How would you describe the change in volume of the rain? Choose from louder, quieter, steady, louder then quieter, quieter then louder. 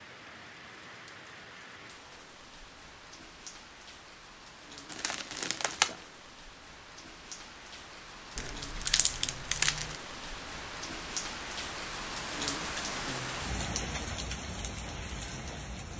louder.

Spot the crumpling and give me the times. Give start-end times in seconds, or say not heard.
4.9-6.0, 8.3-9.9.